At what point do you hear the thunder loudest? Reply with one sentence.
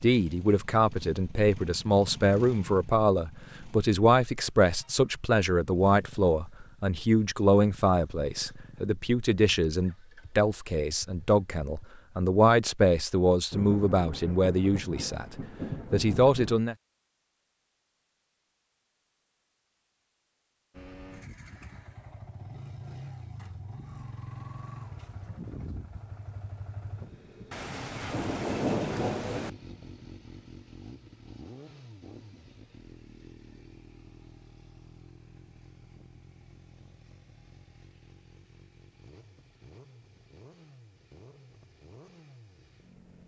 The volume of the thunder peaks at 29 seconds.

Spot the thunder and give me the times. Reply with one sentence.
You can hear the thunder from 13.5 to 16.6 s and from 27.5 to 29.5 s.